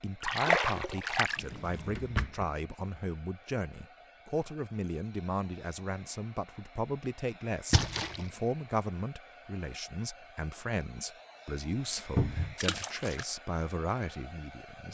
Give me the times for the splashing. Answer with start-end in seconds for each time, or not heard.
0.2-1.4, 7.7-8.2, 12.6-13.2.